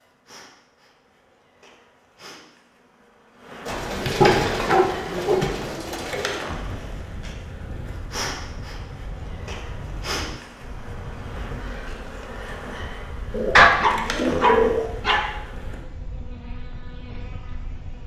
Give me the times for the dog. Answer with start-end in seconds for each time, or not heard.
4.1-5.5, 13.6-15.3.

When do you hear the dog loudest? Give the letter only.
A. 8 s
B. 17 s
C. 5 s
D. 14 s
D.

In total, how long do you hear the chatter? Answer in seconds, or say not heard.
not heard.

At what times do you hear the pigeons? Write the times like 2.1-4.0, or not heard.
3.6-6.5, 13.3-14.9.